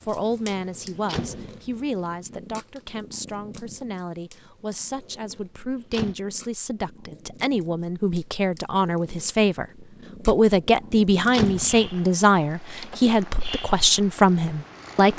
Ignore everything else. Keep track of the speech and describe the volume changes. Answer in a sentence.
The volume of the speech goes up.